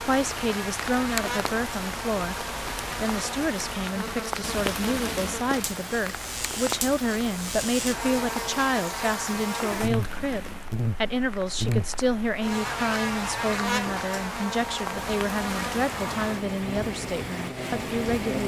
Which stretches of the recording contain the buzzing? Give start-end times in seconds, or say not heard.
0.0-18.4.